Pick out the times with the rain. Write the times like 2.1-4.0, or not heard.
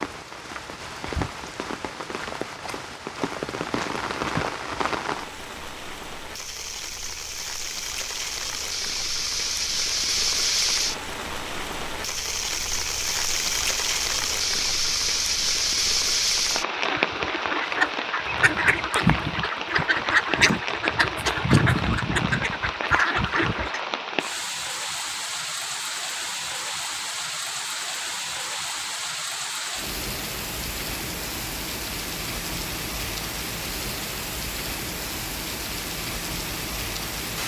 0.0-37.4.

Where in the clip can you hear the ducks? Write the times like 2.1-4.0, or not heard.
16.7-23.8.